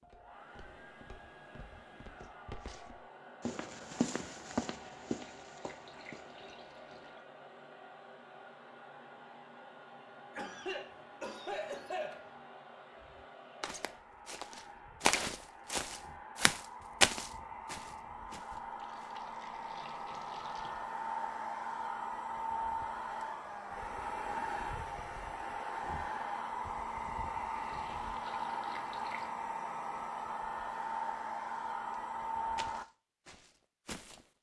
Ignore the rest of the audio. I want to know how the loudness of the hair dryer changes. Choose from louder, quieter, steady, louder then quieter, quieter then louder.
louder.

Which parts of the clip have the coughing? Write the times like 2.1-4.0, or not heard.
10.3-12.3.